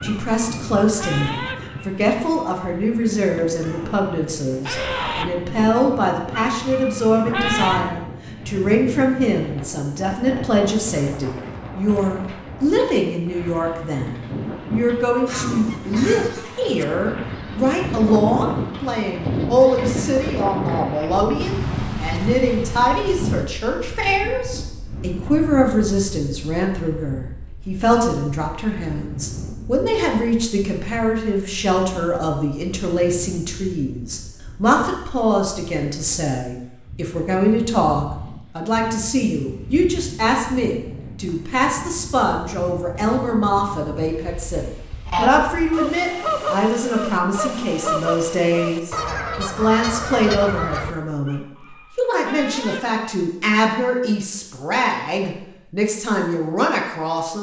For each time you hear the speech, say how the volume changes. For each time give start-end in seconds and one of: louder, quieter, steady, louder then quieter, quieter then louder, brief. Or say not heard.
0.0-57.3 steady.